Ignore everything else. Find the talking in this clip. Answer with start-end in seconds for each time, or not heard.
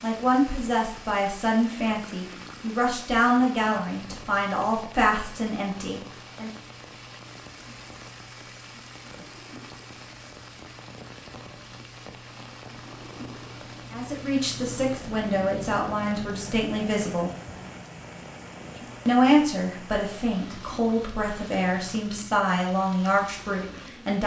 0.0-6.5, 13.9-17.3, 19.1-24.2.